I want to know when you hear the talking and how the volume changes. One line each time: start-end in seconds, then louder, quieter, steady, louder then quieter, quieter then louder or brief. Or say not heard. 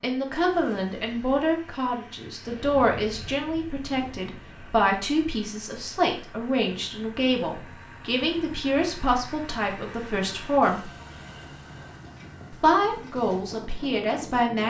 0.0-10.9 steady
12.5-14.6 brief.